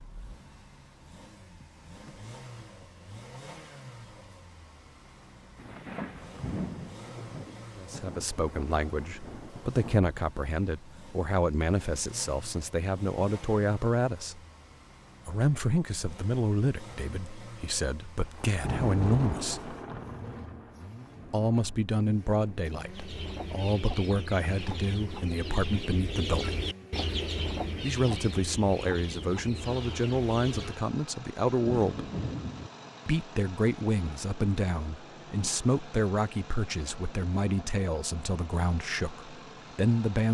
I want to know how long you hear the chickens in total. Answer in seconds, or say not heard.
8 s.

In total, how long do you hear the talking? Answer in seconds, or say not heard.
28 s.